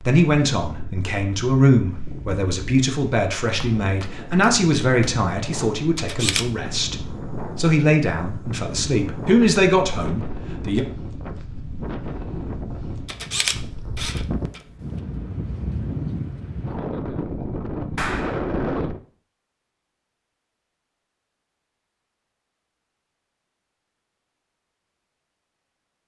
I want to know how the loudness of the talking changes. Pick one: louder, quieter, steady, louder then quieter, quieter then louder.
steady.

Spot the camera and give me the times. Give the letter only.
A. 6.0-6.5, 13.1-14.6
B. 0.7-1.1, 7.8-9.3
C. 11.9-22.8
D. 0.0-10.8
A.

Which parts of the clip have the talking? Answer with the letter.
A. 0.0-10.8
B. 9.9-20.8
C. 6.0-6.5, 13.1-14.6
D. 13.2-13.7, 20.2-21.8
A.